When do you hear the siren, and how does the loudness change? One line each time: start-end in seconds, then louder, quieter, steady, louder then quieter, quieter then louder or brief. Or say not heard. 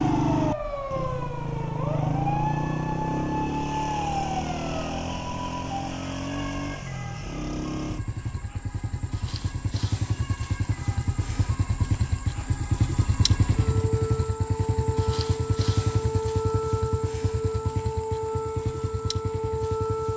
0.0-20.1 quieter then louder.